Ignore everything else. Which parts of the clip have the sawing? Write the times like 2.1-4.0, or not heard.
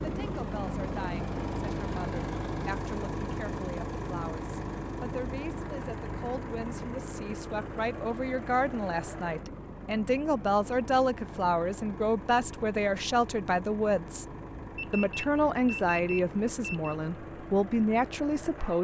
not heard.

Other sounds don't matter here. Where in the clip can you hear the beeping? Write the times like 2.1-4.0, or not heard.
14.8-16.9.